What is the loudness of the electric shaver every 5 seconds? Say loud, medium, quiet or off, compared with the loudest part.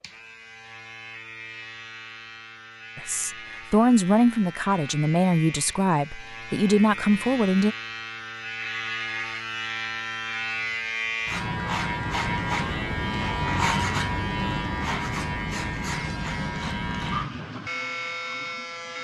quiet, medium, loud, loud.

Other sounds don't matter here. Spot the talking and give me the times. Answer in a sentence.
The talking can be heard from 3.0 to 7.8 s.